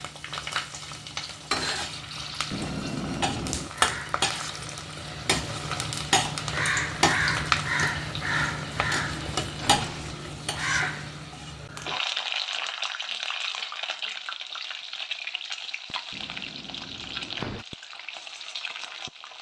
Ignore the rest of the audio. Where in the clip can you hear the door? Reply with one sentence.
The door can be heard from 2.5 to 3.8 s, from 8.5 to 10.3 s and from 16.1 to 17.6 s.